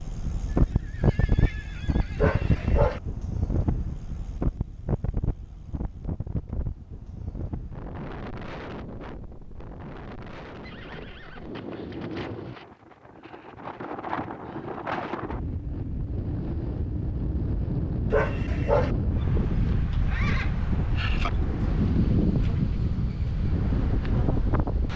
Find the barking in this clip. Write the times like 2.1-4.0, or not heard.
2.1-3.0, 18.1-18.9.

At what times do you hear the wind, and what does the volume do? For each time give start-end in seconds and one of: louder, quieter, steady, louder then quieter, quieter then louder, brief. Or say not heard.
0.0-24.9 quieter then louder.